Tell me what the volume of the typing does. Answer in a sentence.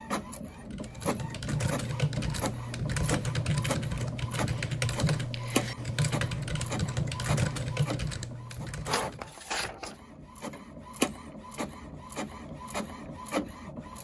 The loudness of the typing stays about the same.